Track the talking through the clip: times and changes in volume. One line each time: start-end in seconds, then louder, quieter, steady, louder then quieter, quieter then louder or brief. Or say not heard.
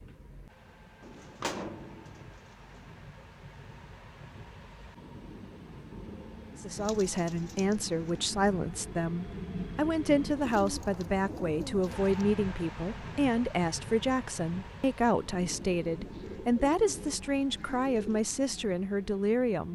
6.5-19.7 steady.